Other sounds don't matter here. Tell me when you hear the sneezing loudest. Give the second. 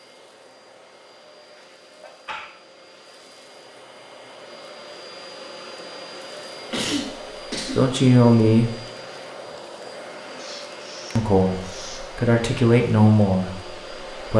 7 s.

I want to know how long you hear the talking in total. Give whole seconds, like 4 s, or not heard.
4 s.